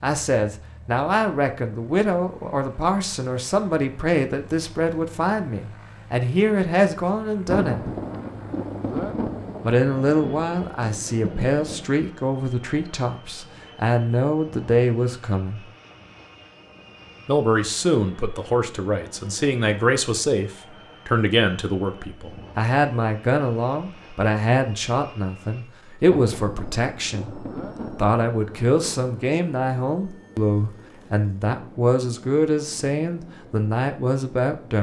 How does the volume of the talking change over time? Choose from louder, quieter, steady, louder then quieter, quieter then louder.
steady.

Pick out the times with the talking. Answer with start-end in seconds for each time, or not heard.
0.0-7.9, 9.6-15.7, 17.2-34.7.